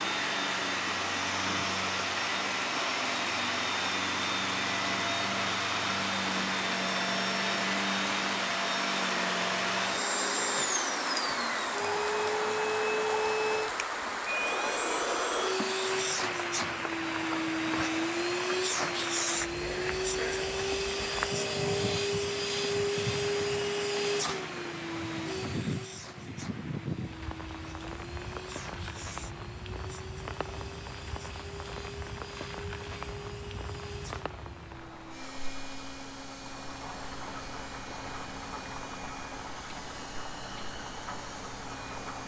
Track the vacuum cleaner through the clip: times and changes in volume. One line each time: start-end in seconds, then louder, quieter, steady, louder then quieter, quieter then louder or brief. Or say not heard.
0.0-42.2 quieter.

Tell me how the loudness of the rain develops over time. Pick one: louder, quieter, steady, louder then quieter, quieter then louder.
quieter.